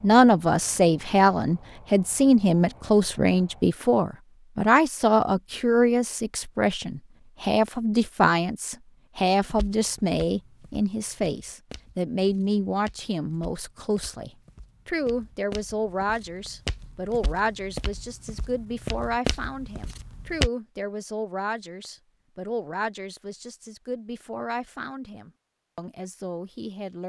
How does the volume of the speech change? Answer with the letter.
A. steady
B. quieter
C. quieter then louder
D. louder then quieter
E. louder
B.